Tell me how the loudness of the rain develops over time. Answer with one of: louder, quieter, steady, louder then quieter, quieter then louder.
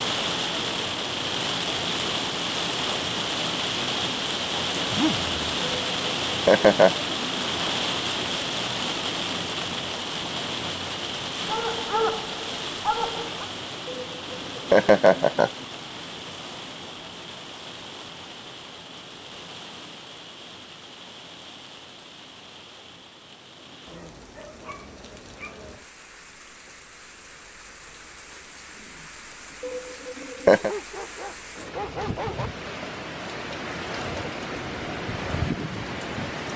quieter then louder.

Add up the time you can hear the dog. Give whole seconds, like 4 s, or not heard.
6 s.